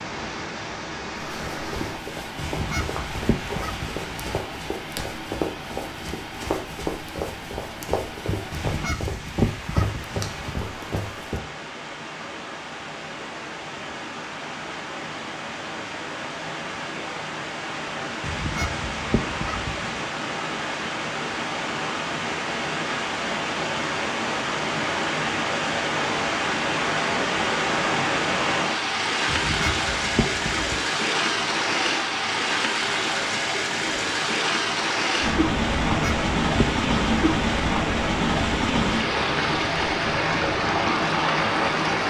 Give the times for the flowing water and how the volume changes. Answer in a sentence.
You can hear the flowing water from 0.0 to 42.0 s, getting louder.